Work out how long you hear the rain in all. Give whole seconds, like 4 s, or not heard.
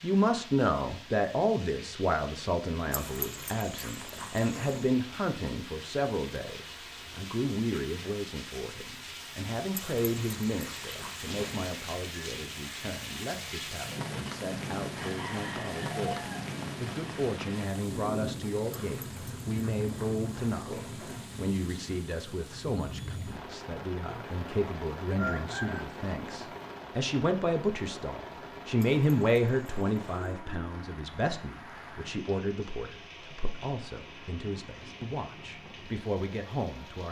37 s.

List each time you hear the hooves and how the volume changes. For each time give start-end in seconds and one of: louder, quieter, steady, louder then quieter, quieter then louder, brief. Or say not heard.
not heard.